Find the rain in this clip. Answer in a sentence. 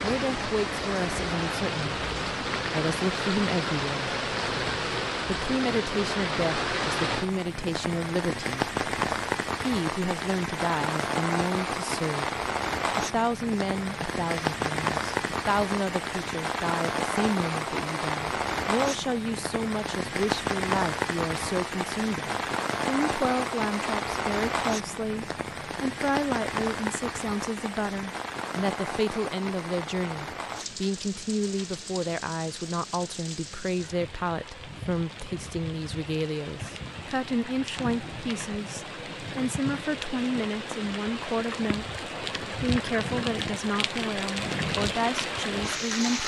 The rain can be heard from 0.0 to 46.2 s.